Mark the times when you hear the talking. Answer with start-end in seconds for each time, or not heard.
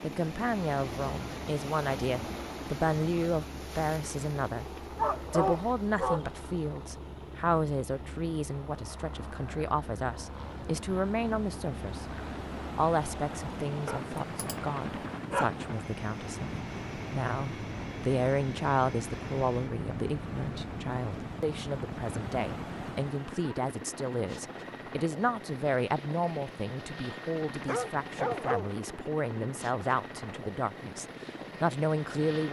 0.0-4.7, 5.3-12.1, 12.8-32.4.